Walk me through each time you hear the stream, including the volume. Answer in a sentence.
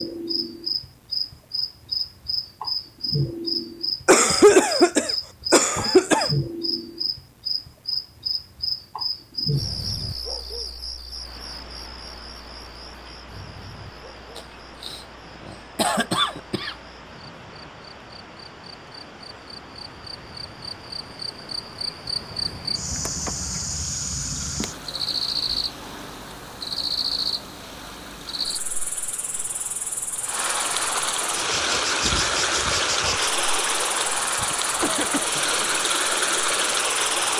The stream can be heard from 11.1 to 37.3 s, getting louder.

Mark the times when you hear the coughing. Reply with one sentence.
You can hear the coughing from 4.0 to 6.3 s, from 14.3 to 16.8 s and from 34.4 to 35.7 s.